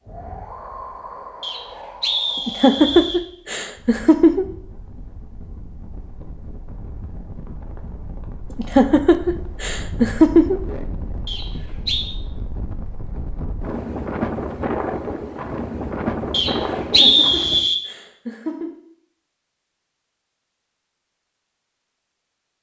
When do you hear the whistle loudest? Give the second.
17 s.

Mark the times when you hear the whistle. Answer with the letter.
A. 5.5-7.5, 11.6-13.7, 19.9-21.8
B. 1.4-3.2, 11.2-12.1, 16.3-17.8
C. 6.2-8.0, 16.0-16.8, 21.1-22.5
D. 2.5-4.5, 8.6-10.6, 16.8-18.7
B.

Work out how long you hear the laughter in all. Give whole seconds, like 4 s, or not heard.
6 s.